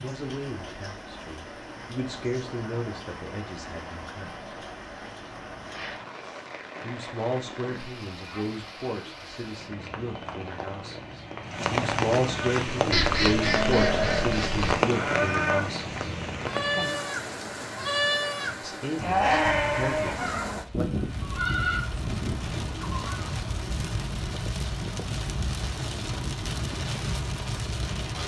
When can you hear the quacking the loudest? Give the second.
13 s.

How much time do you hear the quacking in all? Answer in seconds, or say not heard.
2 s.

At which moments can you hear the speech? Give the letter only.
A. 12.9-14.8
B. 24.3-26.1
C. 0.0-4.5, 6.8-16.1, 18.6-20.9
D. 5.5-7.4
C.